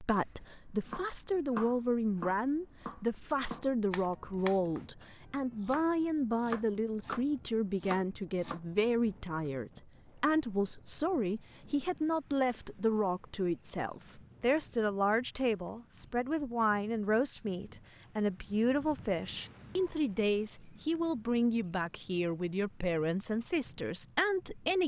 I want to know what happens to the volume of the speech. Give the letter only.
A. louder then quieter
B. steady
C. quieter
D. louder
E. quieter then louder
B.